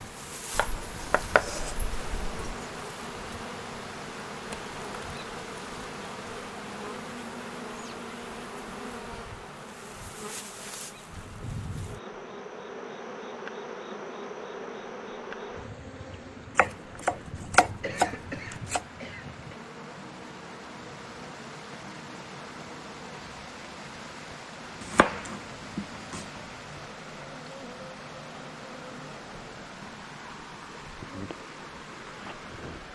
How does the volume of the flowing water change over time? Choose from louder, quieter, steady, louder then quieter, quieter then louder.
quieter then louder.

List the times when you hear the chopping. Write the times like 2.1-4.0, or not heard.
0.6-2.5, 16.6-18.8, 24.8-26.2.